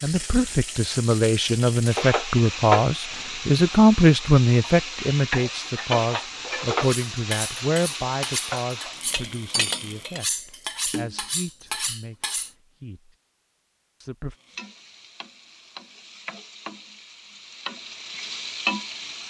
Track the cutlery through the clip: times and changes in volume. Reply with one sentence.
The cutlery can be heard from 6.8 to 12.5 s, at a steady volume.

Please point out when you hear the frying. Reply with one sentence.
You can hear the frying from 0.0 to 10.2 s and from 14.3 to 19.2 s.